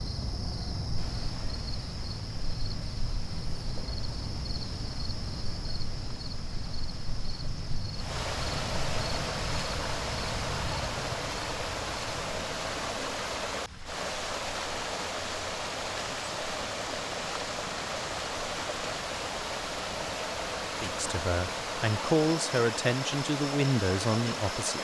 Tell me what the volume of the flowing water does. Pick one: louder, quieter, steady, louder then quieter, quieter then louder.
louder.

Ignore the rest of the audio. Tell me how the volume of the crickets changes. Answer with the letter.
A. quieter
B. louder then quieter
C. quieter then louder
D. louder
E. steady
A.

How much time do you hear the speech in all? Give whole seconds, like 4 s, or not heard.
4 s.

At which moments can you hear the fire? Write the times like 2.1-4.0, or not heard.
not heard.